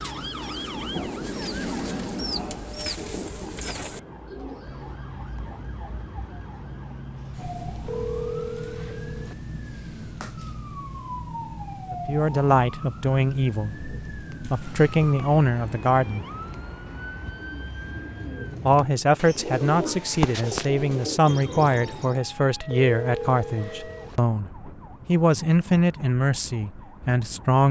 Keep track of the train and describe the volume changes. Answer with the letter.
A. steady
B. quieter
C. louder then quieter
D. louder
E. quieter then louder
B.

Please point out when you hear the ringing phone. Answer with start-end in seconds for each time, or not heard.
7.8-9.3, 22.6-24.2.